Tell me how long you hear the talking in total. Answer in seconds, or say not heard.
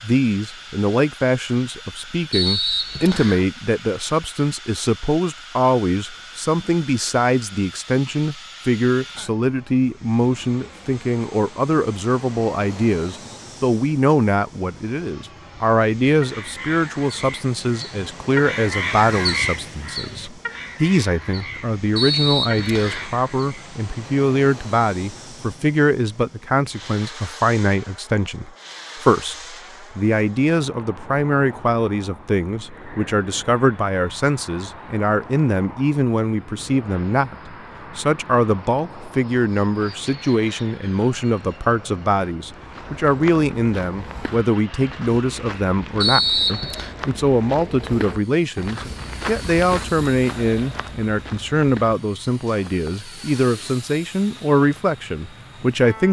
56 s.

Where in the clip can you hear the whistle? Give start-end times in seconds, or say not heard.
2.3-3.5, 21.9-23.1, 46.0-47.0.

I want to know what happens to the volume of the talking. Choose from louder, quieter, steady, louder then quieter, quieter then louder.
steady.